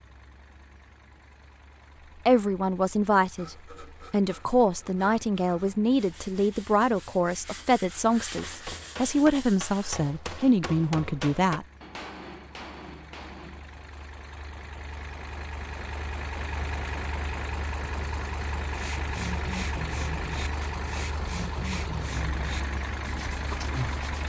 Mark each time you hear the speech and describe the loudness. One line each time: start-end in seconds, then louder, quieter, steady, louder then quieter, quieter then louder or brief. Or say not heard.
2.2-11.7 steady.